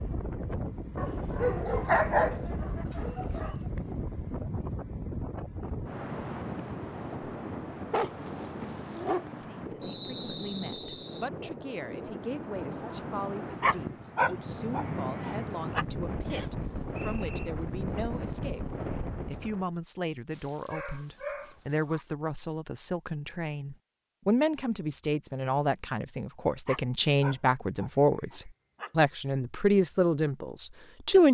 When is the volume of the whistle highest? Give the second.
10 s.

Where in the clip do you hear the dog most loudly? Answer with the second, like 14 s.
2 s.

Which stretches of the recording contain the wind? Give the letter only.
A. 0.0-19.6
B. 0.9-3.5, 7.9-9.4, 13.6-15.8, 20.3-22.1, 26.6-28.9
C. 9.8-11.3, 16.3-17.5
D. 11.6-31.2
A.